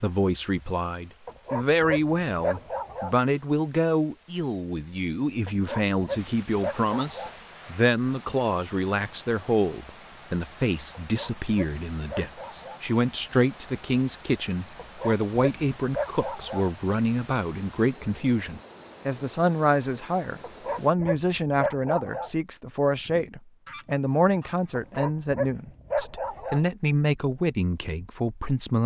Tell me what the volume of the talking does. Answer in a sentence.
The volume of the talking stays about the same.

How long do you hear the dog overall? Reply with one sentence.
The dog can be heard for 11 seconds in total.